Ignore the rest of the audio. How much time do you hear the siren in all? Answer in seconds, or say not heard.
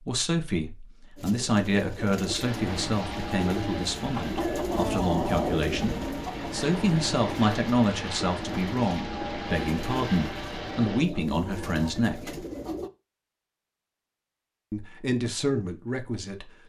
not heard.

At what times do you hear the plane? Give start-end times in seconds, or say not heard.
2.4-11.1.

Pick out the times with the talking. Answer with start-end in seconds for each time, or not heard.
0.1-12.4, 14.7-16.5.